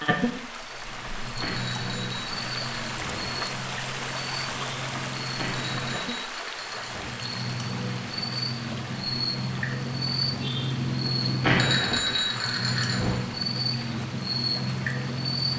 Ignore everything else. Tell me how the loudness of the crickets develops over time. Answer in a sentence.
The volume of the crickets goes up.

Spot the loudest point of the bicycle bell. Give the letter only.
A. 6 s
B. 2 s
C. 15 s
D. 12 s
D.